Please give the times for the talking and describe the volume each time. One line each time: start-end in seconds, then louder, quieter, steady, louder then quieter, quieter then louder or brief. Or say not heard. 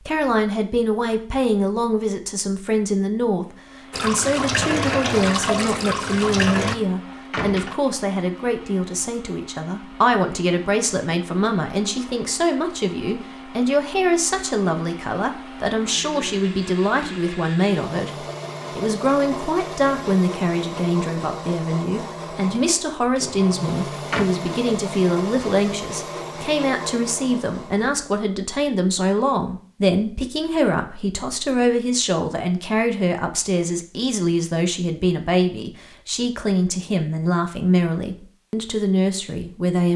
0.1-39.9 steady.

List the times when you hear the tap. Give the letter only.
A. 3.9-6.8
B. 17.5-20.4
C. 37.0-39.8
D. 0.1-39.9
A.